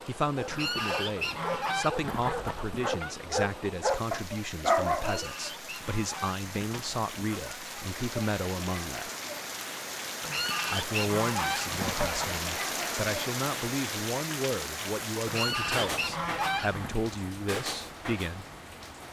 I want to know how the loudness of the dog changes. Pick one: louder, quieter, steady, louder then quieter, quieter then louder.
louder.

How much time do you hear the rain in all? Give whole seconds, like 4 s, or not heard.
19 s.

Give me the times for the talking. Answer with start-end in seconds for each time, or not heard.
0.1-9.1, 10.7-18.4.